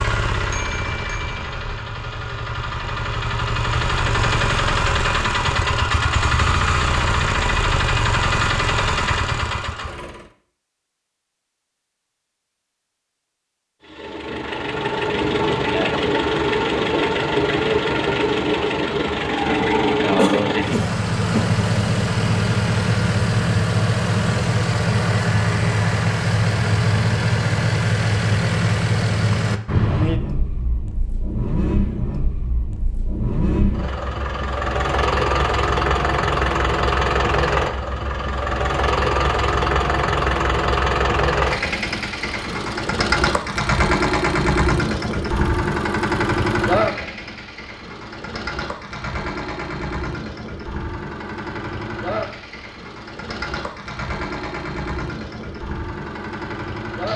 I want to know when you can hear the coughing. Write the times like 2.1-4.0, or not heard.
20.1-21.5.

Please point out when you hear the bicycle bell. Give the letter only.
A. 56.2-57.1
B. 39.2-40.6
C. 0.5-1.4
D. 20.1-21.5
C.